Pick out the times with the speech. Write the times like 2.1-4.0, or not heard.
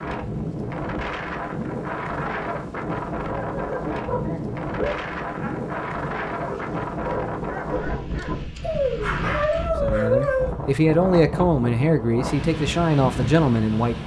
9.8-14.0.